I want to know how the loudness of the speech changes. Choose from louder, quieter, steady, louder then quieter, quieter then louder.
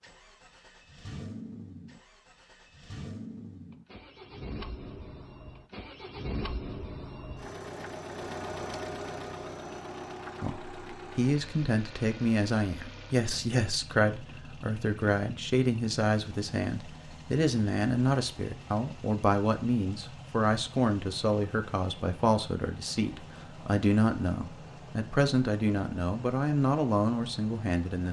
steady.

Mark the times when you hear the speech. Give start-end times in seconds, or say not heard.
10.4-28.0.